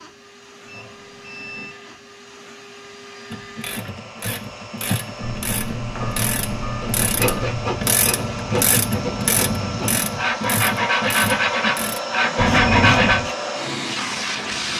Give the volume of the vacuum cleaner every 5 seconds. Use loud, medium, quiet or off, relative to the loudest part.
quiet, medium, loud.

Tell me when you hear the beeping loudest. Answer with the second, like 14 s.
13 s.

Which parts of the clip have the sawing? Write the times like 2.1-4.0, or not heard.
6.8-13.2.